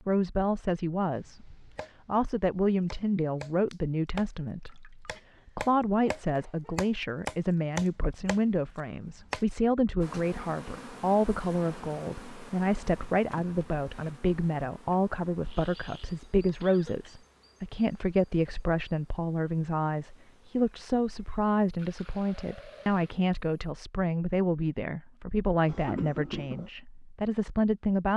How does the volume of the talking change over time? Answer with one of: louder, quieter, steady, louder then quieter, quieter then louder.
steady.